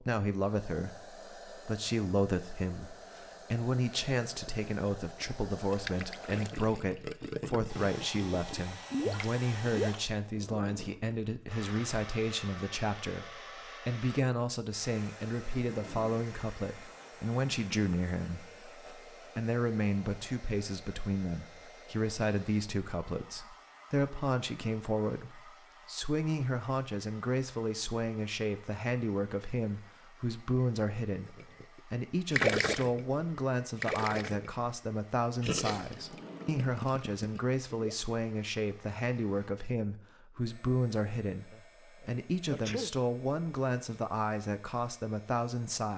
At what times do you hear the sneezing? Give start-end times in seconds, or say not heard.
41.5-42.9.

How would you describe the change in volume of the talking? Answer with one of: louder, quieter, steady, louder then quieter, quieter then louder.
steady.